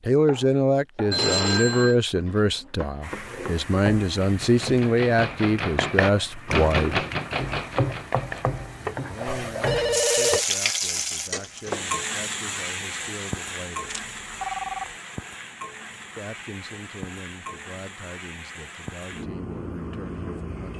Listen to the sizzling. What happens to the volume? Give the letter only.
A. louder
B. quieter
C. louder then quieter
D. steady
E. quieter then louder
C.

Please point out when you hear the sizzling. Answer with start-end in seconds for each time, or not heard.
3.0-20.7.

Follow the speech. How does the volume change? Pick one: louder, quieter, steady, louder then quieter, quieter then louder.
quieter.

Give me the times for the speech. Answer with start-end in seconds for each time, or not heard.
0.0-7.0, 9.0-13.9, 16.1-20.7.